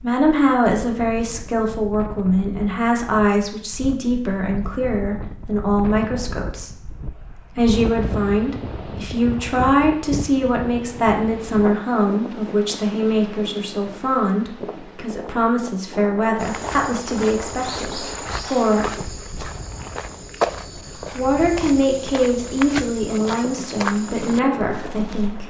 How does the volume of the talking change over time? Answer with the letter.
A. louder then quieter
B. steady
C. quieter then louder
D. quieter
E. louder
B.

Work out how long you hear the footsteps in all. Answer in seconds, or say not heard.
9 s.